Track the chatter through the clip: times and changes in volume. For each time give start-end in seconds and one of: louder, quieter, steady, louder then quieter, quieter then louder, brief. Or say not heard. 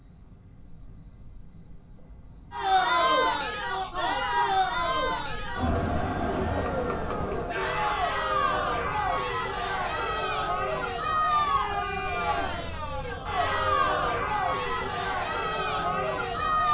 2.5-16.6 steady.